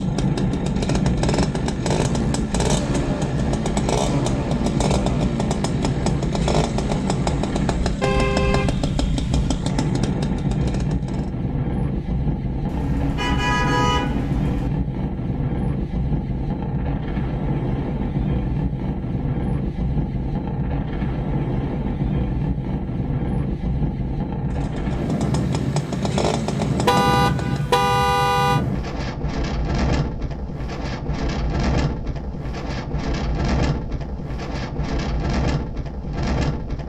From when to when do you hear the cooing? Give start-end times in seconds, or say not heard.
not heard.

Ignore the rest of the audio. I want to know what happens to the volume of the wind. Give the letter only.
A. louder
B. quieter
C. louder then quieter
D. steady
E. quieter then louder
D.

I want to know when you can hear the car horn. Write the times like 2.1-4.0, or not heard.
8.0-9.5, 12.7-14.7, 26.9-28.6.